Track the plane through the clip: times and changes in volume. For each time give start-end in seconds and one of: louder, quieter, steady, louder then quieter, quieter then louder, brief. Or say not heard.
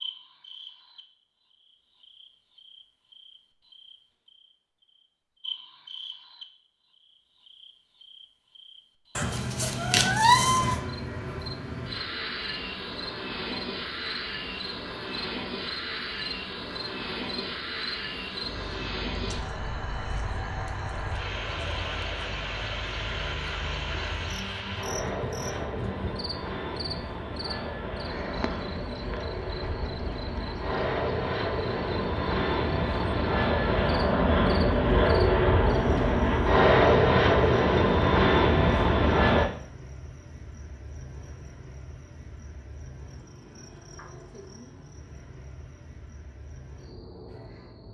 10.3-39.5 louder.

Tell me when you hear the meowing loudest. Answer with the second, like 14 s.
10 s.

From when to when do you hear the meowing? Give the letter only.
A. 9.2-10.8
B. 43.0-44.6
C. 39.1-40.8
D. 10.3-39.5
A.